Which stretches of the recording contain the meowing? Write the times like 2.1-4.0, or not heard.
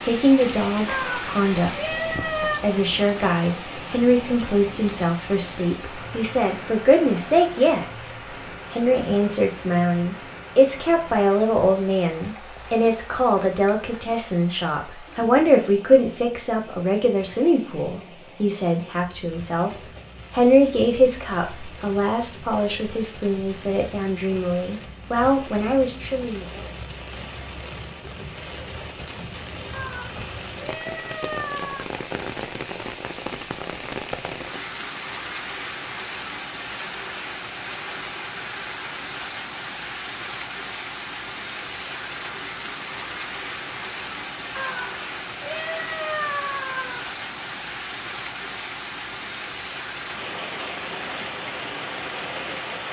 0.8-2.6, 29.7-31.9, 44.5-47.0.